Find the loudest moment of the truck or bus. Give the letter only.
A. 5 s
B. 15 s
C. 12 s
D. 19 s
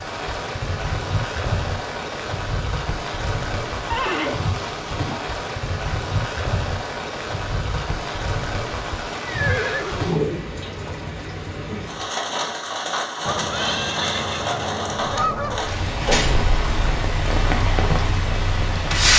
D.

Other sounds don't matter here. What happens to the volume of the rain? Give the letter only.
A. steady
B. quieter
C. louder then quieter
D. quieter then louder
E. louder
A.